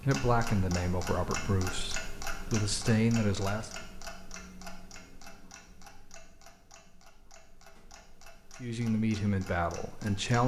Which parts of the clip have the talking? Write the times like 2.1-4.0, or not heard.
0.0-3.7, 8.6-10.4.